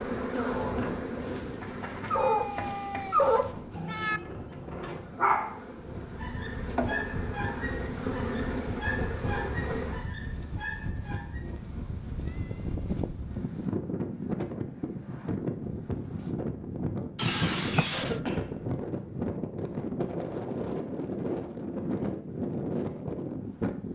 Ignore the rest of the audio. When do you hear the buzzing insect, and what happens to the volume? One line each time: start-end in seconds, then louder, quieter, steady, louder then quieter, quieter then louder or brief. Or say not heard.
0.0-10.1 quieter then louder.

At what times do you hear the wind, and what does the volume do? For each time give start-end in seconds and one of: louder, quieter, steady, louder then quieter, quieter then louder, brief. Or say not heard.
0.0-23.9 louder.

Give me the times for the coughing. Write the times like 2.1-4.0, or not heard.
17.9-18.9.